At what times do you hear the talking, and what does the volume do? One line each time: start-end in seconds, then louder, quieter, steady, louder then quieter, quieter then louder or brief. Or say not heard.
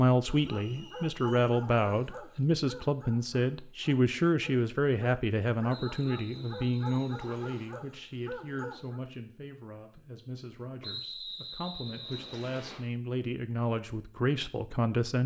0.0-15.2 quieter then louder.